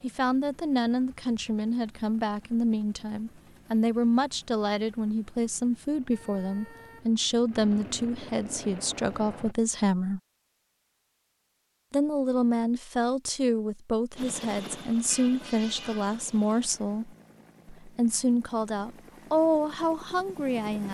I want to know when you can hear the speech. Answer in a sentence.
The speech can be heard from 0.0 to 10.2 s and from 11.9 to 20.8 s.